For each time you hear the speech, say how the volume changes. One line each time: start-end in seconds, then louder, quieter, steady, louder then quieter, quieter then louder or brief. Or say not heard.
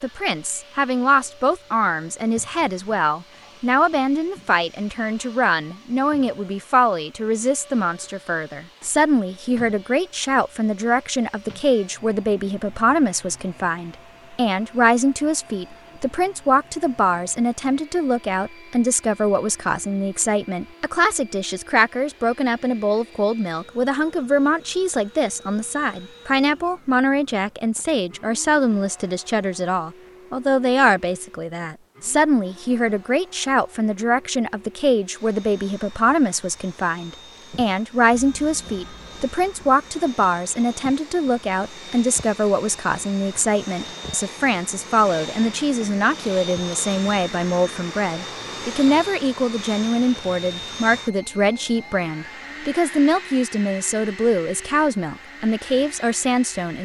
0.0-56.8 steady.